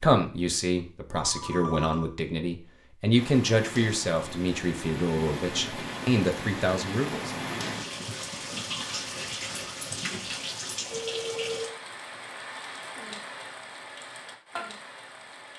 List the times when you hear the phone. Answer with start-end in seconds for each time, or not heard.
1.1-2.1, 10.8-11.8.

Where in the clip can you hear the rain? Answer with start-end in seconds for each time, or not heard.
3.1-15.5.